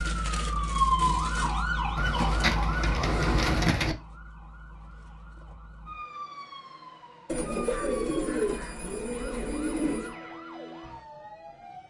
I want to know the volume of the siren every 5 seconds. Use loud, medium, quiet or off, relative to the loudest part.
loud, quiet, quiet.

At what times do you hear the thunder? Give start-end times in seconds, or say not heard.
not heard.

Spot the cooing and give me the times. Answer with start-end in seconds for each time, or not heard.
1.9-4.0, 7.2-10.2.